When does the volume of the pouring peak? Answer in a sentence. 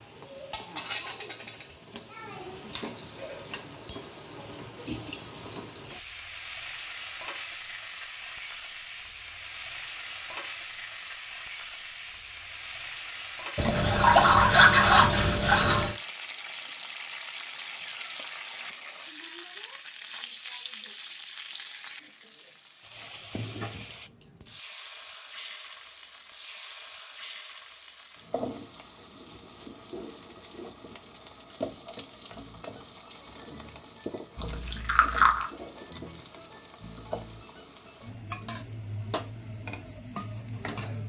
The volume of the pouring peaks at 15 seconds.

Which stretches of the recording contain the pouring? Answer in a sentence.
You can hear the pouring from 13.6 to 15.9 s and from 34.4 to 35.5 s.